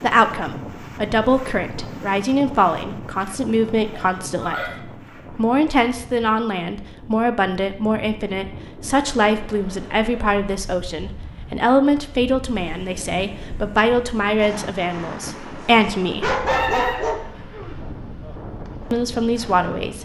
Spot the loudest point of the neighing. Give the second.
17 s.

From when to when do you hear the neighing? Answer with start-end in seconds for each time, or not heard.
3.9-4.8, 16.4-17.8.